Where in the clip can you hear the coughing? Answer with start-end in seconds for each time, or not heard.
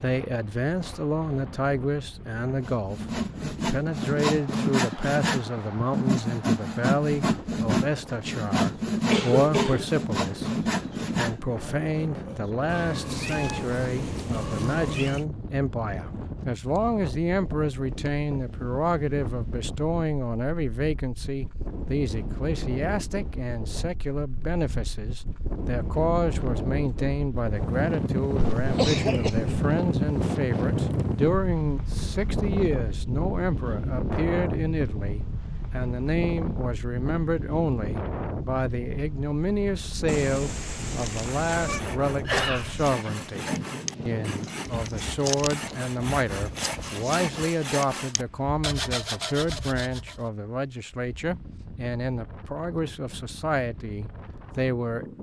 8.9-9.8, 28.8-29.6, 42.2-43.1.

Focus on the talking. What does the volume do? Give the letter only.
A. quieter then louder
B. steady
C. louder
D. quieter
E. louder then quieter
B.